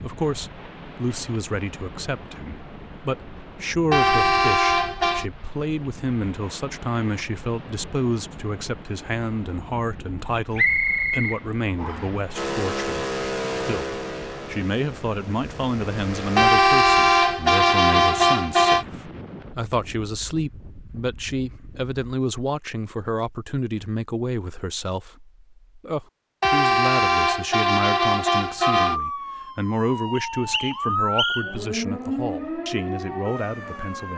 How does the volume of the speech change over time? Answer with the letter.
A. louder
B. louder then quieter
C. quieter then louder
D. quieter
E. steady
E.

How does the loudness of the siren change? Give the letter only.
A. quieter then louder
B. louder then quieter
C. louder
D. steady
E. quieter
B.